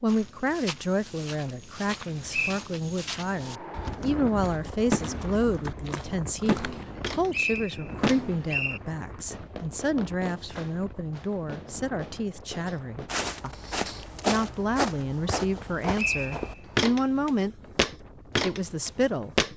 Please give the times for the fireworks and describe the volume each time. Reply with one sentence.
The fireworks can be heard from 4.9 to 13.1 s, getting quieter.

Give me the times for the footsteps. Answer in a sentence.
You can hear the footsteps from 0.1 to 8.2 s and from 12.7 to 19.5 s.